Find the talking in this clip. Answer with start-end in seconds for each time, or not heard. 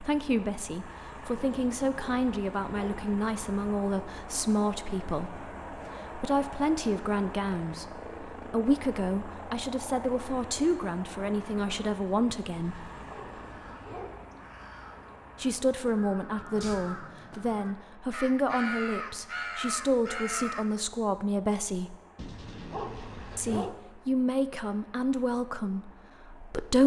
0.0-12.9, 15.4-21.9, 23.4-26.8.